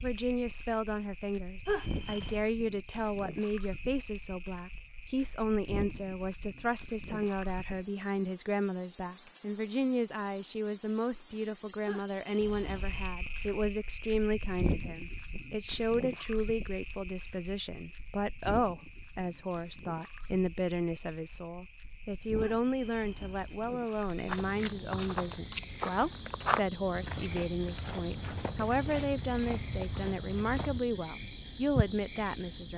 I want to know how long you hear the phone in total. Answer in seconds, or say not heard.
3 s.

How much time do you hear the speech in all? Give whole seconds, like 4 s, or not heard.
33 s.